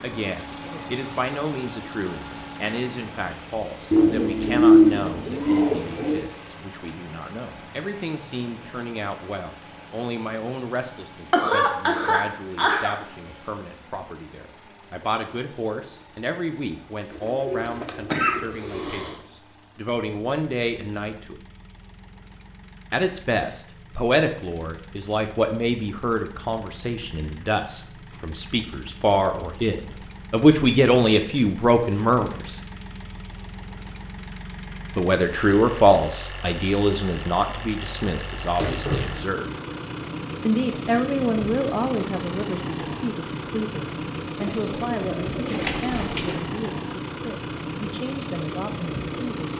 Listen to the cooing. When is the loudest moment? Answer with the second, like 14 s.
5 s.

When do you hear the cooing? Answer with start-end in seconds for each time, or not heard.
3.9-6.2, 17.1-19.1, 44.4-46.4.